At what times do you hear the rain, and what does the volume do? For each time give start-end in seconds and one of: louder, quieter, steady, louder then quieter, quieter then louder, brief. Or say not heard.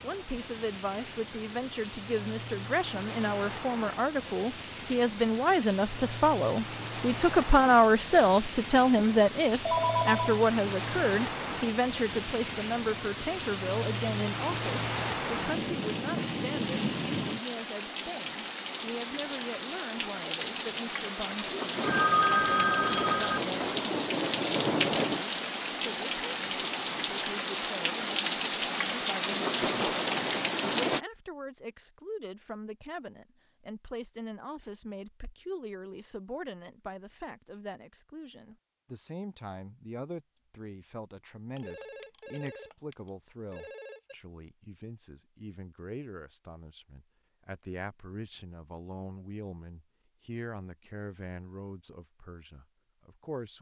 0.0-31.0 louder.